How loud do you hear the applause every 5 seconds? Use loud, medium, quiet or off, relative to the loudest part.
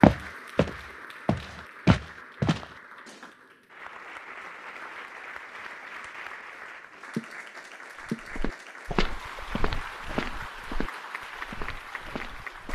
medium, loud, loud.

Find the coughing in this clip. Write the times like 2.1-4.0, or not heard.
not heard.